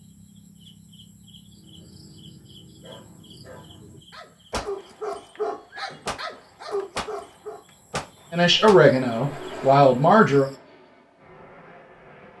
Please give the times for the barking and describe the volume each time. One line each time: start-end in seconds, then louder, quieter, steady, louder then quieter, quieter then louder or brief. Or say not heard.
1.5-7.7 louder.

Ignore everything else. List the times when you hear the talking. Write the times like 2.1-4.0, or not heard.
8.3-10.4.